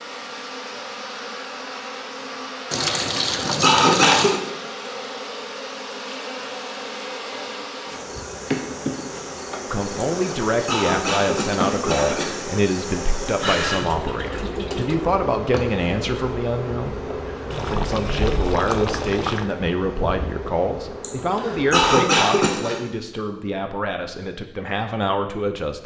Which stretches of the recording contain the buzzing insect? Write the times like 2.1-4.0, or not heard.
0.0-21.9.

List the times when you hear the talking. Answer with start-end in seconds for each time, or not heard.
9.7-25.8.